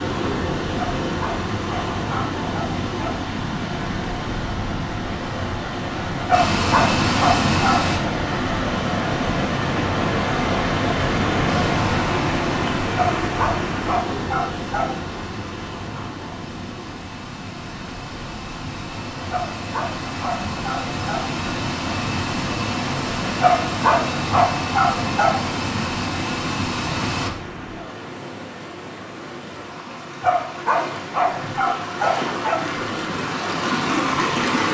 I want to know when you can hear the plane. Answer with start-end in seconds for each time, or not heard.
6.3-8.0, 11.7-27.3.